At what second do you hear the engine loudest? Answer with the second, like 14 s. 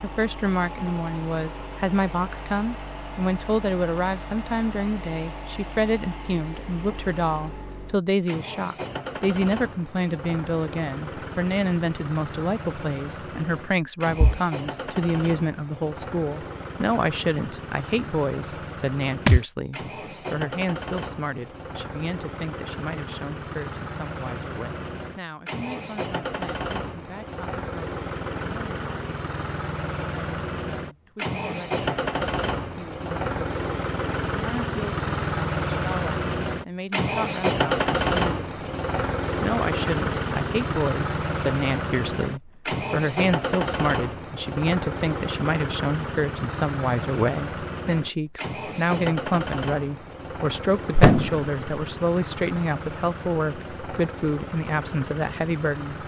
38 s.